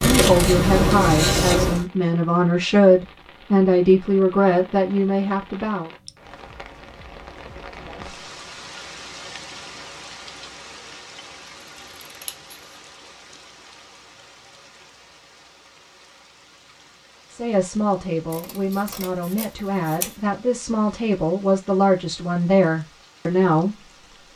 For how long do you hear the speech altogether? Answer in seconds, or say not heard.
13 s.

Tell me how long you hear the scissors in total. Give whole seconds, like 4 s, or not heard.
4 s.